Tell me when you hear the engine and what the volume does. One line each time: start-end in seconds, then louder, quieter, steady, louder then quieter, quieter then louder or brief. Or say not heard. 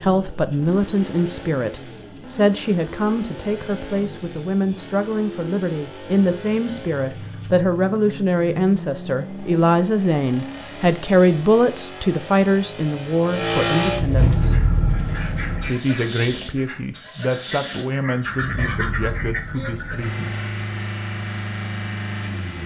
0.0-22.6 louder then quieter.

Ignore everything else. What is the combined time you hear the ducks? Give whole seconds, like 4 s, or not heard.
6 s.